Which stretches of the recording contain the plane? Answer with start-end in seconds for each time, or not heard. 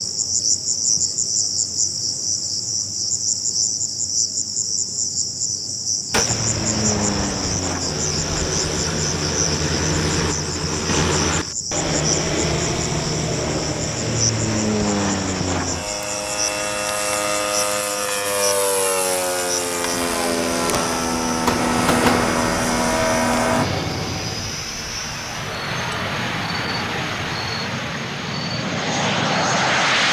6.1-30.0.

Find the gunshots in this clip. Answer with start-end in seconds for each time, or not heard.
6.1-7.5, 20.6-22.3.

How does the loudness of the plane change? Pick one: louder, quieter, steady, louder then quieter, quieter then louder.
steady.